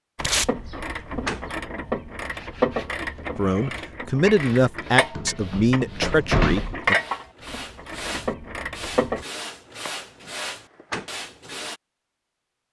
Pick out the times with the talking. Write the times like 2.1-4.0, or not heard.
3.4-7.0.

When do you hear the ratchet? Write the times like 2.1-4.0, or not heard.
0.1-9.2.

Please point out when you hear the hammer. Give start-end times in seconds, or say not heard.
not heard.